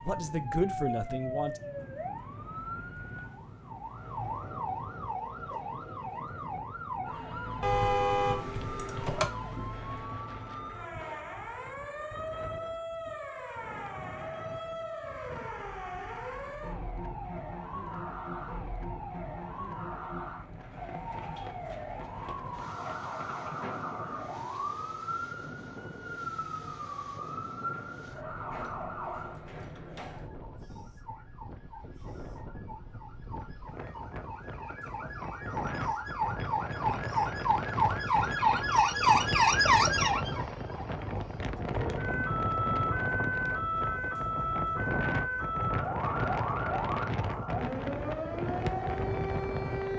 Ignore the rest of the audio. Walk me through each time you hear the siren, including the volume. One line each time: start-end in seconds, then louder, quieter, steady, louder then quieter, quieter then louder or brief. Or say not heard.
0.0-49.9 louder.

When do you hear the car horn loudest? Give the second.
8 s.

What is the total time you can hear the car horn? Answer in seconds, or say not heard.
2 s.